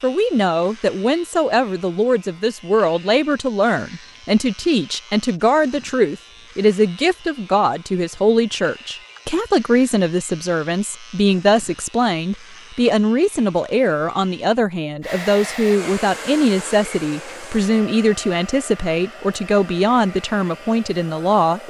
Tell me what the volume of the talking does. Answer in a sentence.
The volume of the talking stays about the same.